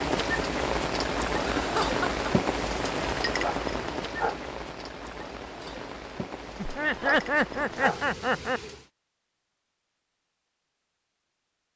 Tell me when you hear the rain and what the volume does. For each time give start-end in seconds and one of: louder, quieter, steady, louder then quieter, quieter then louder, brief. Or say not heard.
0.0-8.9 quieter.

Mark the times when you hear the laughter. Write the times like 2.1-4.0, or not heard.
1.6-2.2, 6.5-8.6.